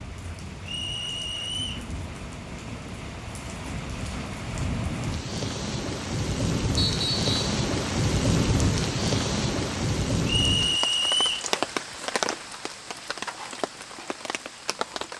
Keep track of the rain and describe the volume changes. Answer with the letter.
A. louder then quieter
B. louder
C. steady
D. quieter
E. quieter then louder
A.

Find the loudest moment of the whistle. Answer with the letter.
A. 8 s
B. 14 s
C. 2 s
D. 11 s
D.